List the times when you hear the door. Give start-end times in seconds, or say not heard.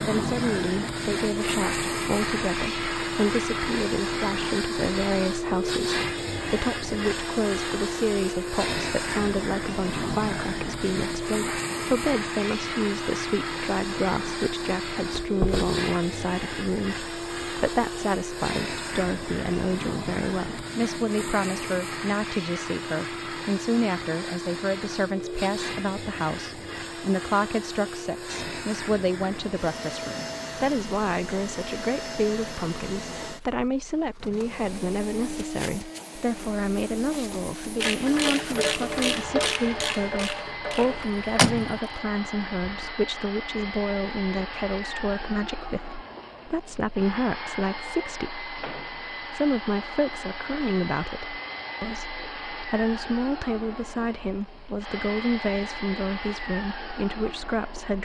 15.1-15.8, 41.0-41.6.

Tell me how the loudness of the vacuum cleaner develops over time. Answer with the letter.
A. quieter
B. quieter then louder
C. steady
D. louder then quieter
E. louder
A.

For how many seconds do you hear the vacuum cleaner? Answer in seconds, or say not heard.
58 s.